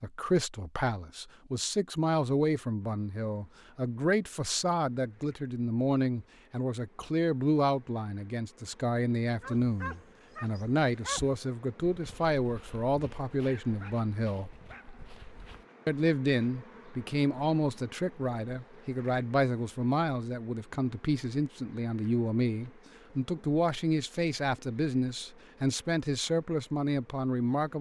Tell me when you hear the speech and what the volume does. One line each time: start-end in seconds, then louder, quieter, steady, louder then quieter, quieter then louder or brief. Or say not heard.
0.0-14.5 steady
15.8-27.7 steady.